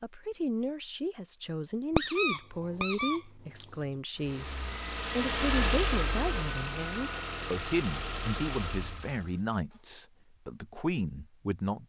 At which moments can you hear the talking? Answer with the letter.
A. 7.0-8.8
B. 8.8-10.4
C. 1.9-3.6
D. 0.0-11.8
D.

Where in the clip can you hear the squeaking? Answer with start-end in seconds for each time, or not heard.
1.9-3.6.